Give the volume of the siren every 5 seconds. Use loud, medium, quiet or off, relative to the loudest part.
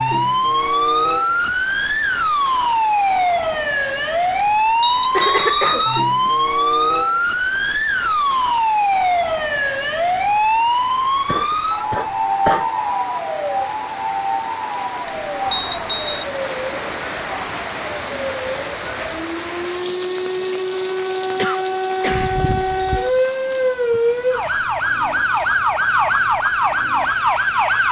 loud, loud, loud, medium, loud, loud.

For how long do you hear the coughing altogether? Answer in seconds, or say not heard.
4 s.